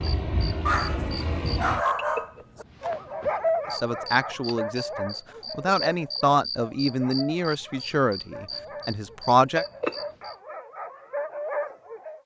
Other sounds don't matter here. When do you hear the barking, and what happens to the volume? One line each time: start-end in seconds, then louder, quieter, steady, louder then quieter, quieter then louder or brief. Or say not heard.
0.7-12.2 quieter then louder.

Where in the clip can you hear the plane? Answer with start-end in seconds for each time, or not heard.
0.0-1.9.